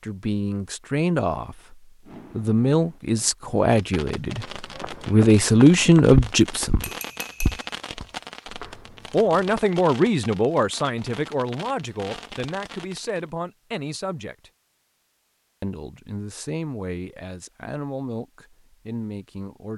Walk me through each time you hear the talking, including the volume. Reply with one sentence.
You can hear the talking from 0.0 to 6.9 s, getting louder; from 9.1 to 14.5 s, getting quieter; and from 15.6 to 19.7 s, at a steady volume.